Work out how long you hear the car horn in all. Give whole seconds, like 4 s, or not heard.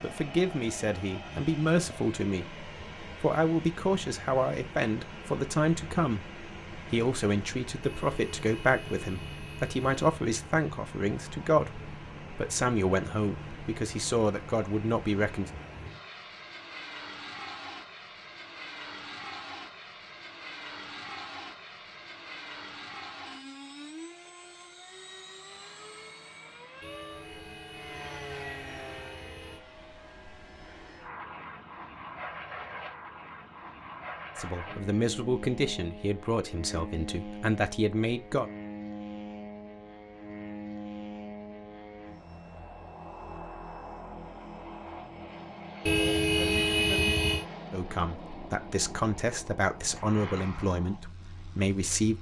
7 s.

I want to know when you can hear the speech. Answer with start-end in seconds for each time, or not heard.
0.0-15.5, 34.4-38.5, 47.7-52.1.